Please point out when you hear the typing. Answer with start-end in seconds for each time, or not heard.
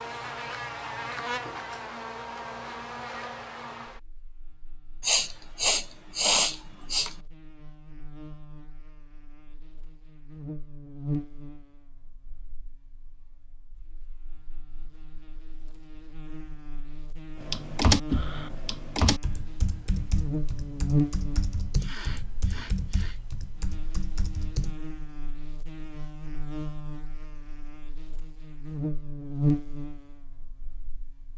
17.4-24.8.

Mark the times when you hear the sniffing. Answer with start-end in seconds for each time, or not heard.
5.0-7.1, 21.8-23.2.